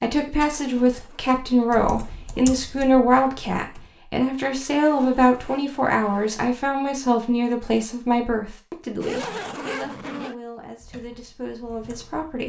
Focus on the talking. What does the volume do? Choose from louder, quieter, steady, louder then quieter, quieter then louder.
quieter.